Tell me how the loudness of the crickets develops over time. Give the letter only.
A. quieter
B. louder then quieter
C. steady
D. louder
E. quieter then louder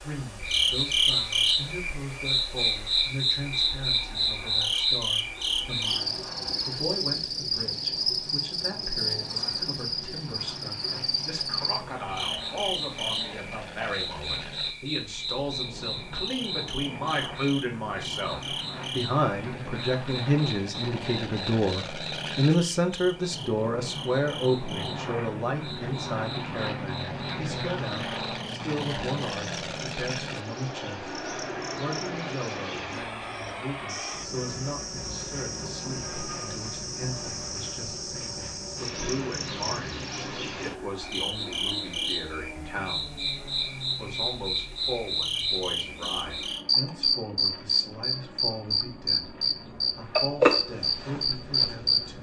E.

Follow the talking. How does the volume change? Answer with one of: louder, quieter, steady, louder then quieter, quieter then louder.
louder then quieter.